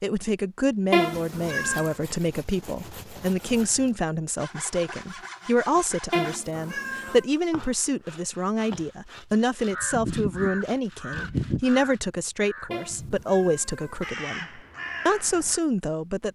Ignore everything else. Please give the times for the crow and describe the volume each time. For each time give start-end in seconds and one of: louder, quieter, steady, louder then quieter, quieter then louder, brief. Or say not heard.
9.7-15.6 quieter then louder.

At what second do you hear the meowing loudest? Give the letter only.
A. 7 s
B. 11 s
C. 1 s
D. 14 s
C.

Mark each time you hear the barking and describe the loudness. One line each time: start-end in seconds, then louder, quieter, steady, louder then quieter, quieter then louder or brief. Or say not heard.
not heard.